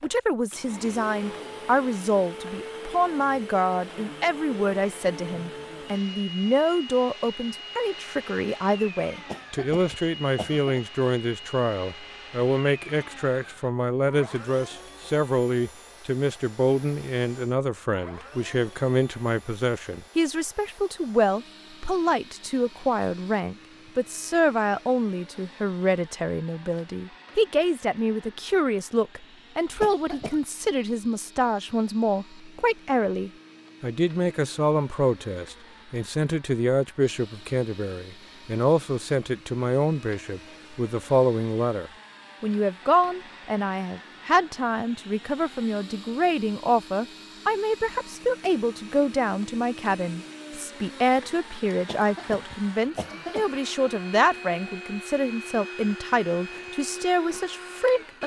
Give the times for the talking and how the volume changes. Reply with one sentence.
You can hear the talking from 0.0 to 58.2 s, at a steady volume.